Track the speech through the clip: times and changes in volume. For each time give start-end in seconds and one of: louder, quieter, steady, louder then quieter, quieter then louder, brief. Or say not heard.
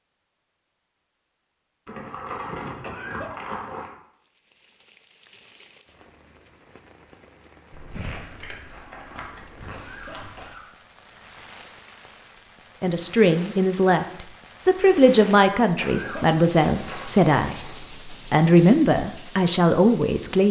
12.8-20.4 steady.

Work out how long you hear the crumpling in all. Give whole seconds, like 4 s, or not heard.
7 s.